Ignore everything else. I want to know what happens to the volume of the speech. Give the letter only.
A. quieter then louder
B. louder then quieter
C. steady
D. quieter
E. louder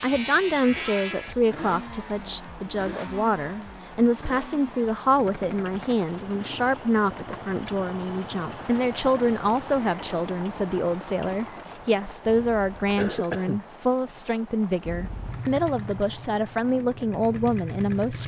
C.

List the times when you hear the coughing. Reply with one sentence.
You can hear the coughing from 0.8 to 1.4 s and from 12.9 to 13.6 s.